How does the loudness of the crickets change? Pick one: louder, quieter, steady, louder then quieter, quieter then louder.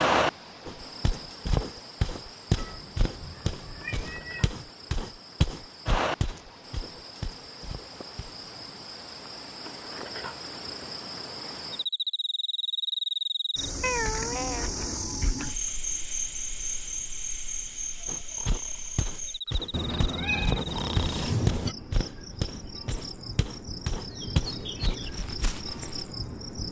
louder then quieter.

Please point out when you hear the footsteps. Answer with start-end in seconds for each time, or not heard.
0.7-8.4, 18.1-26.1.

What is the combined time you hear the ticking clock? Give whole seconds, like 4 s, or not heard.
not heard.